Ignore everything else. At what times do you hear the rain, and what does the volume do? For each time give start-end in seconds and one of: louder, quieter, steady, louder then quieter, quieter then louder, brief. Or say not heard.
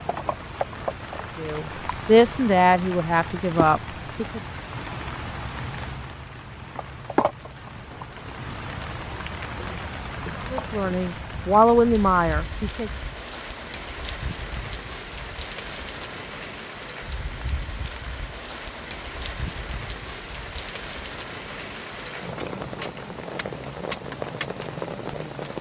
0.0-25.5 steady.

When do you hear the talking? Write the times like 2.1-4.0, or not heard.
1.4-4.4, 10.5-12.9.